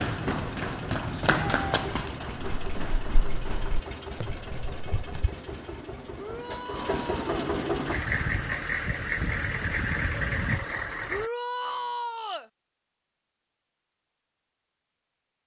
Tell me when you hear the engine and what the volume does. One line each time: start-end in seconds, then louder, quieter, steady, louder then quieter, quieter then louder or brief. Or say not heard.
0.0-11.3 louder.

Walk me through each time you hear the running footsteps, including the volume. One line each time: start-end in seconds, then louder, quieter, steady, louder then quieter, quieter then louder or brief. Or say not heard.
0.0-5.3 quieter.